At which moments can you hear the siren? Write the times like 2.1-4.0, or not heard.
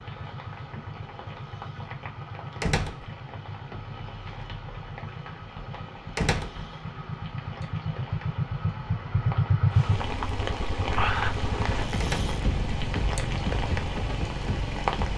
not heard.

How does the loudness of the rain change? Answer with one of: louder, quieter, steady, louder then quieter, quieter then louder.
louder.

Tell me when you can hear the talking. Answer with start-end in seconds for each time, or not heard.
not heard.